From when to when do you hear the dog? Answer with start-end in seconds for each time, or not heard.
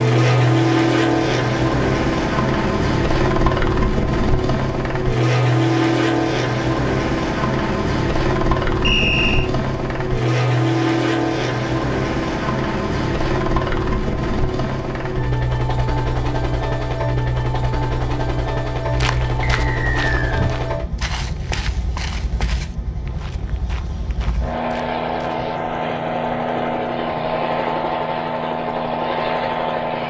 not heard.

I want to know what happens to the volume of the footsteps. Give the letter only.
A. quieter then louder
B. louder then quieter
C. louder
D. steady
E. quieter
E.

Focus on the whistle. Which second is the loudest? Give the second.
9 s.